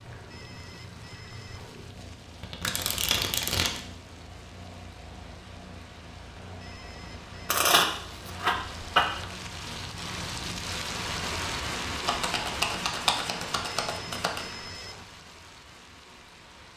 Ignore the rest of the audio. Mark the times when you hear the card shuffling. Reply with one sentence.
You can hear the card shuffling from 2.4 to 3.8 s, from 7.5 to 9.2 s and from 12.1 to 14.6 s.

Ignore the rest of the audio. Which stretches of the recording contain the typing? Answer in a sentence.
The typing can't be heard in this clip.